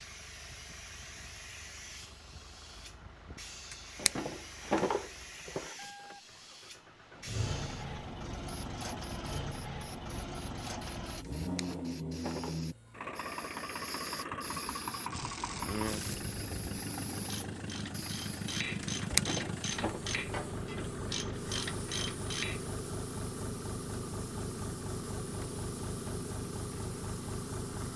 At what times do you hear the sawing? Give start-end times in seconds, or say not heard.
not heard.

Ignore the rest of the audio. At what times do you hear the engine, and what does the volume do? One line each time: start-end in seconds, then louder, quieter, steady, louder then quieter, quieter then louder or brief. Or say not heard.
0.0-27.9 louder.